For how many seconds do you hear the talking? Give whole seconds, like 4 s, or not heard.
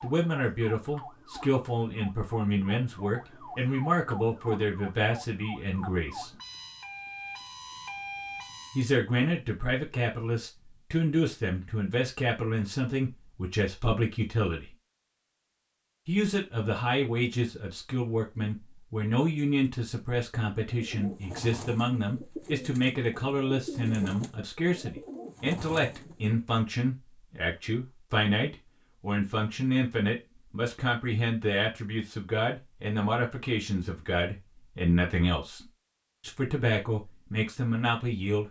35 s.